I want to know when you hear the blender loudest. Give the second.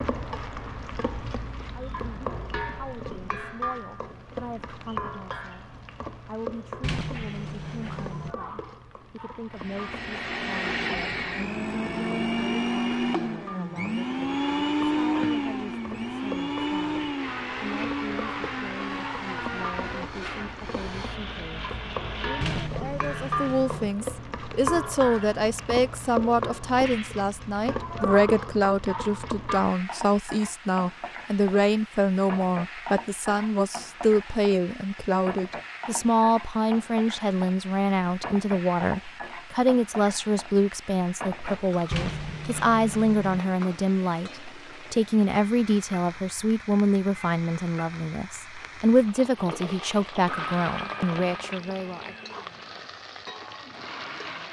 15 s.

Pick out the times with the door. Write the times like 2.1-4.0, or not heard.
6.8-8.3, 22.4-23.9, 41.9-43.4.